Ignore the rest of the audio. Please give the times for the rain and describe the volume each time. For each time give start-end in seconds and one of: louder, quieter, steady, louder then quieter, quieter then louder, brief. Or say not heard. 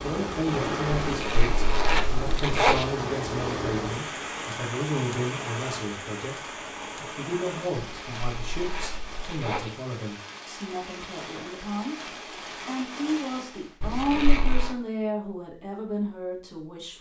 0.0-13.8 quieter.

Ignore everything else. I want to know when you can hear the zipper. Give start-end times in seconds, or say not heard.
0.9-2.9, 8.0-9.7, 13.8-14.8.